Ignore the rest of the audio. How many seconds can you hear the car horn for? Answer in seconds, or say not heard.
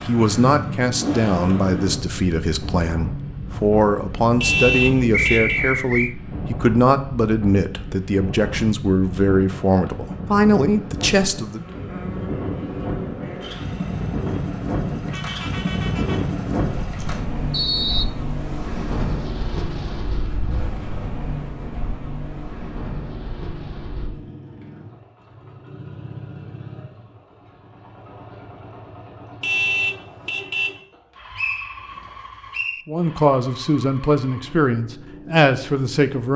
4 s.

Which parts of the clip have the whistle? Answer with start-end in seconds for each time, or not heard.
5.1-6.2, 17.5-18.1, 31.4-32.9.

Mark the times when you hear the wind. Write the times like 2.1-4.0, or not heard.
0.0-24.1.